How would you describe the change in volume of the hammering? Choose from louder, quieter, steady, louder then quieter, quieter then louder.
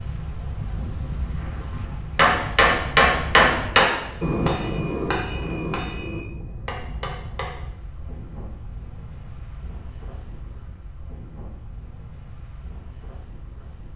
quieter.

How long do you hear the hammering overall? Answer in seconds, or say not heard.
5 s.